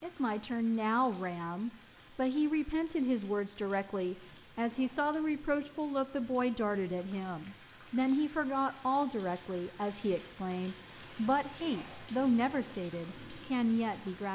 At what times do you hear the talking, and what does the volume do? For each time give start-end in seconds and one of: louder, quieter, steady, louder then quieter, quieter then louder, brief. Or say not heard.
0.0-14.3 steady.